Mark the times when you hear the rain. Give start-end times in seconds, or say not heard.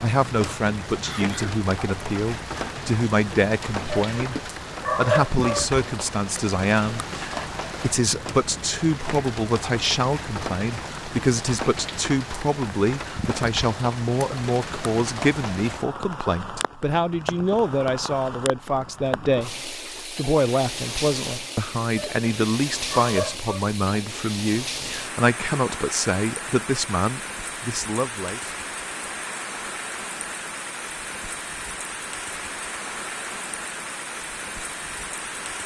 0.0-35.6.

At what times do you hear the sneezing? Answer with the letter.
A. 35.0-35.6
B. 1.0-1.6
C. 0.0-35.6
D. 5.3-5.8
B.